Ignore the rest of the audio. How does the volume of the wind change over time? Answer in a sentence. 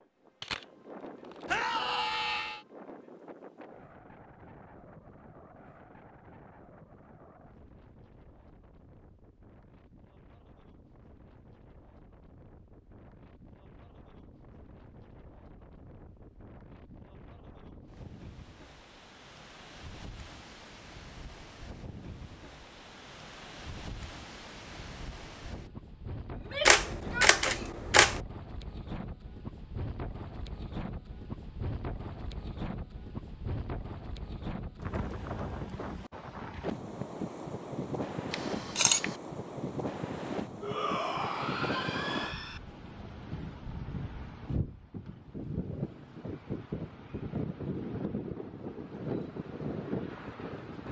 The volume of the wind goes up.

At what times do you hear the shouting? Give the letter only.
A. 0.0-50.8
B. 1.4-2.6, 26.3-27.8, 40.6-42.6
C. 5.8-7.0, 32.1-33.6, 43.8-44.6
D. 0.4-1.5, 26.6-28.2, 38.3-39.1
B.